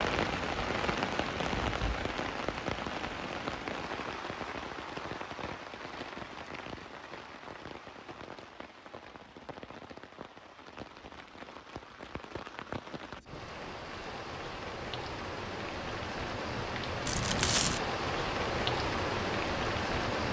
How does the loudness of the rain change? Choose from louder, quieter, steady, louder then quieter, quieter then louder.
quieter then louder.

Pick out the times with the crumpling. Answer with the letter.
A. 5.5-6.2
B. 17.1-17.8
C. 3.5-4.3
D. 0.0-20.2
B.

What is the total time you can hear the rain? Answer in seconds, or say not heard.
20 s.